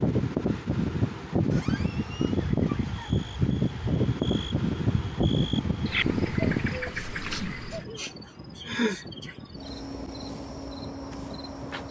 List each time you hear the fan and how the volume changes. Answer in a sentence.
You can hear the fan from 0.0 to 11.8 s, getting quieter.